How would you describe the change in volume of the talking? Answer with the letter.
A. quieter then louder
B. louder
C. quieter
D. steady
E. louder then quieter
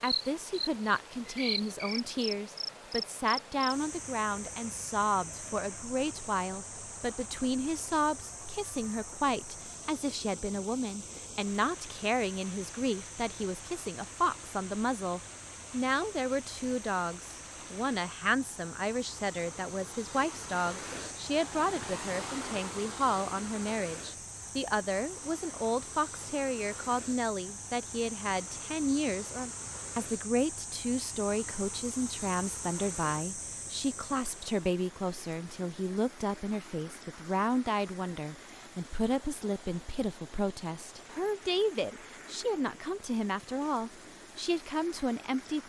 D.